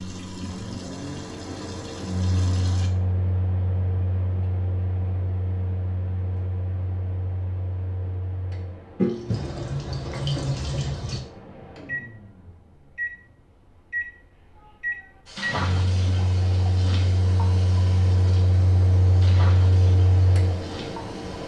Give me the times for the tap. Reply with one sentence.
The tap can be heard from 0.0 to 2.9 s, from 8.9 to 11.2 s and from 15.2 to 21.4 s.